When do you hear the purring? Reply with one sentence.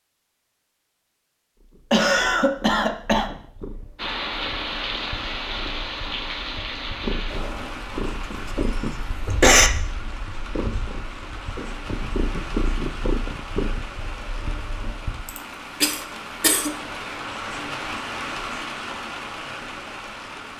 The purring can be heard from 1.6 to 15.3 s.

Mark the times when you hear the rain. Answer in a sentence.
You can hear the rain from 4.0 to 20.5 s.